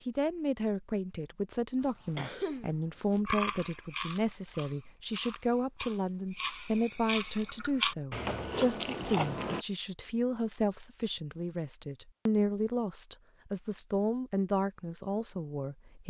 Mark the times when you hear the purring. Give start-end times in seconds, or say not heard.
not heard.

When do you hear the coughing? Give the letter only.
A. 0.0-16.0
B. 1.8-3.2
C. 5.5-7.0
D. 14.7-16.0
B.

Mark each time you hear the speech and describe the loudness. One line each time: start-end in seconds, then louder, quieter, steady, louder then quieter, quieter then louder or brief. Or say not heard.
0.0-16.0 steady.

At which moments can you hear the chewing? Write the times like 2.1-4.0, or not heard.
3.2-9.7.